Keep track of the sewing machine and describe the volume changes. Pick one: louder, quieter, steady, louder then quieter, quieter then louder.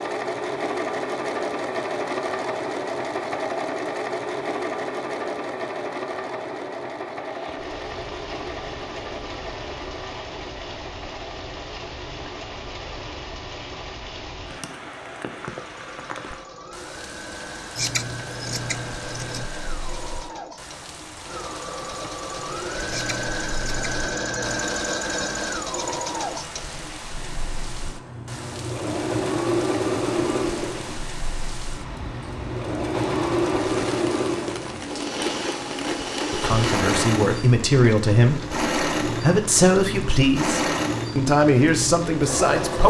quieter then louder.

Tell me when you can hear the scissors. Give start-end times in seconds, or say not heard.
17.8-19.5, 22.9-24.6.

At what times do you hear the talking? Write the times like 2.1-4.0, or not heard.
36.3-42.8.